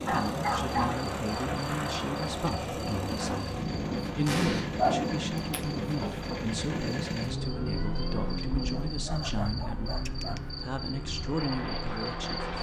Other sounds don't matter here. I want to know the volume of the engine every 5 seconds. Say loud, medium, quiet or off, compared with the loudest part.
loud, loud, medium.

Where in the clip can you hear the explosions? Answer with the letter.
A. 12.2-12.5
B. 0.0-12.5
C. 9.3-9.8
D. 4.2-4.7
D.